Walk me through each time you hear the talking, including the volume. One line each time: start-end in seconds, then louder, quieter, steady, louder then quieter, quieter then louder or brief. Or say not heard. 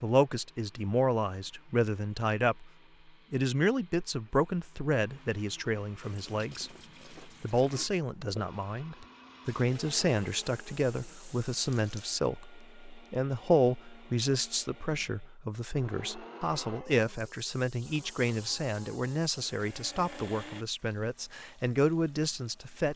0.0-2.7 brief
3.3-22.9 steady.